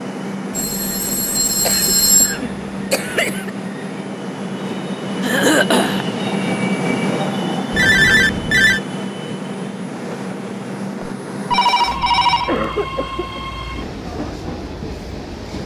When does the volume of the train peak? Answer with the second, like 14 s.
7 s.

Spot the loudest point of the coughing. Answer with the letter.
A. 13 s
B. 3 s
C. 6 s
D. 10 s
C.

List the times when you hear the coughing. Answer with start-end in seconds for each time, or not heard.
1.6-3.5, 5.2-6.0, 12.2-13.4.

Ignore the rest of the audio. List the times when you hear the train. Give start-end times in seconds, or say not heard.
0.0-15.6.